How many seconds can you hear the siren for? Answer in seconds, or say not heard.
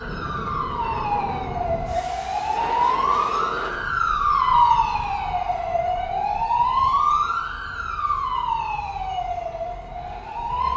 11 s.